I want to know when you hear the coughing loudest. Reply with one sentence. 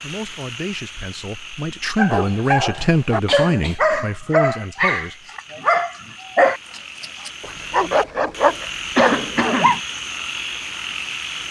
The volume of the coughing peaks at 9 seconds.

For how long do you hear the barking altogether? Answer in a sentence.
The barking can be heard for 8 seconds in total.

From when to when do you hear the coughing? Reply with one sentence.
The coughing can be heard from 2.8 to 3.8 s and from 8.9 to 9.8 s.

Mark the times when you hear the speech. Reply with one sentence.
The speech can be heard from 0.0 to 5.3 s.